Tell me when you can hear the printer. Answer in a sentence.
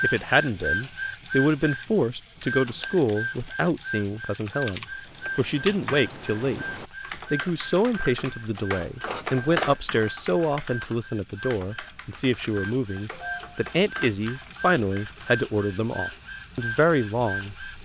You can hear the printer from 0.0 to 17.8 s.